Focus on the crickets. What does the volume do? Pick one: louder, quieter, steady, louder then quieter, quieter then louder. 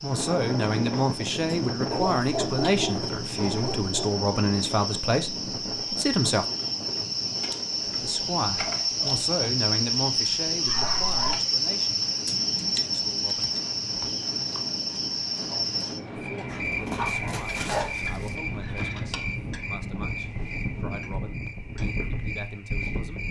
louder then quieter.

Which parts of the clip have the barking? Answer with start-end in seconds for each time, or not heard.
1.9-4.1, 10.7-11.4, 16.4-18.4.